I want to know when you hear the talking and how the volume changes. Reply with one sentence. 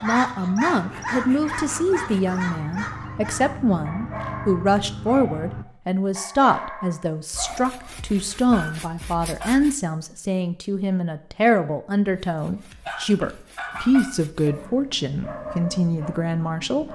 You can hear the talking from 0.0 to 16.8 s, at a steady volume.